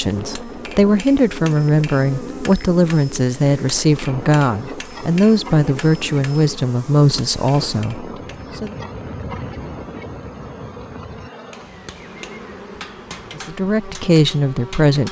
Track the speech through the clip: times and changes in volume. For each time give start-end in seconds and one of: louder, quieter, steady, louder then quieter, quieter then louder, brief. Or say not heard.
0.0-8.8 steady
13.3-15.0 brief.